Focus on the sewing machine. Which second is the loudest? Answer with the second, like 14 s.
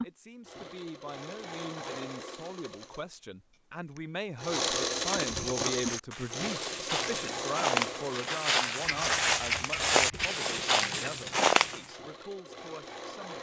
5 s.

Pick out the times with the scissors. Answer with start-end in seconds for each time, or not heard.
8.8-10.3.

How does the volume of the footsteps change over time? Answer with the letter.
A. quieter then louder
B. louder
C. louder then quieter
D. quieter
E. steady
B.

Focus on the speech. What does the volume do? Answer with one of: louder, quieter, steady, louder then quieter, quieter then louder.
louder then quieter.